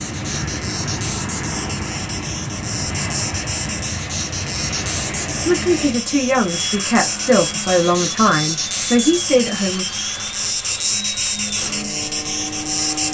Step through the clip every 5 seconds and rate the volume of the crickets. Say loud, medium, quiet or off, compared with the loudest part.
medium, loud, loud.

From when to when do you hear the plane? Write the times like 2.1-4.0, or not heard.
0.0-13.0.